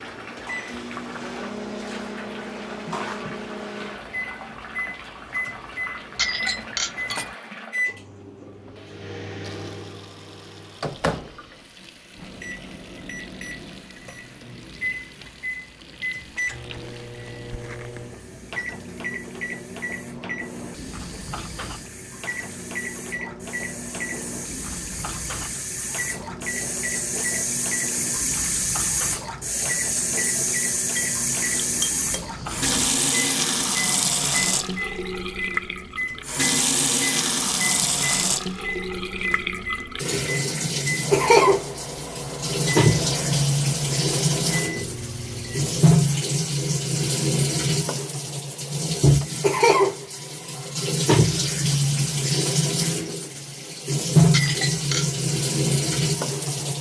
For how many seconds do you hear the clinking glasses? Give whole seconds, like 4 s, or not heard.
3 s.